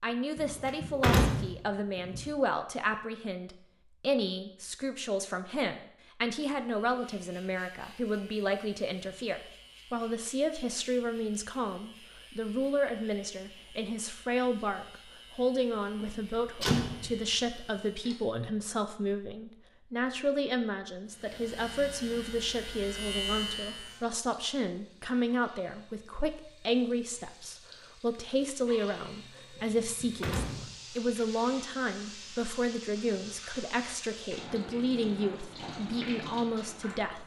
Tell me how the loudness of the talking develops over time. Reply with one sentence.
The volume of the talking stays about the same.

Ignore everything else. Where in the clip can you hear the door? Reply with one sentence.
The door can be heard from 0.3 to 2.2 s, from 16.0 to 17.1 s and from 29.6 to 30.8 s.